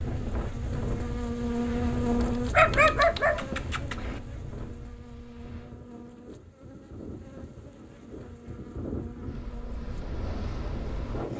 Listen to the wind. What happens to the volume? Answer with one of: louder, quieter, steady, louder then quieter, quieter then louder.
quieter then louder.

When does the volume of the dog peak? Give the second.
3 s.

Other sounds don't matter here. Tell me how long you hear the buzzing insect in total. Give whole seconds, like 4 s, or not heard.
11 s.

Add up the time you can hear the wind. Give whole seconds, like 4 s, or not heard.
11 s.